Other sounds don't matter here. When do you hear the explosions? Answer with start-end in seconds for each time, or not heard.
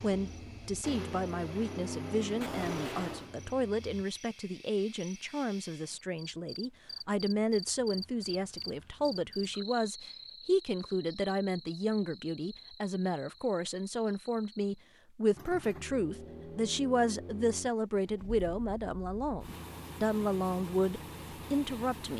2.4-3.3.